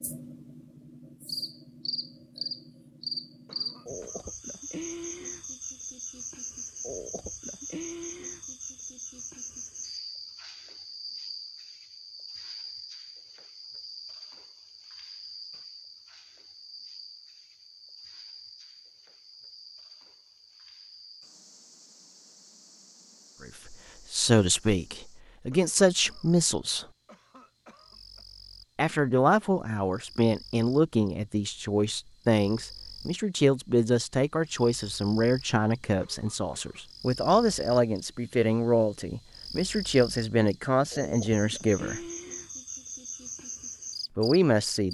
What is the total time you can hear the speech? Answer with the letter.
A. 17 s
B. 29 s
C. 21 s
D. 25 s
A.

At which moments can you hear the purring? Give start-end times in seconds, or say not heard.
not heard.